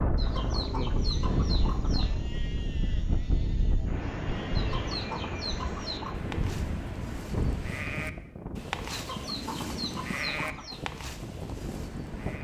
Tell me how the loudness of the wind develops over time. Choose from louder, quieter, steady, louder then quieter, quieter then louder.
quieter.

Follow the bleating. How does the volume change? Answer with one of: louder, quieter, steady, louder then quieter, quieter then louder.
louder.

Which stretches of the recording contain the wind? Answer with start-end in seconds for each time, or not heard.
0.0-12.3.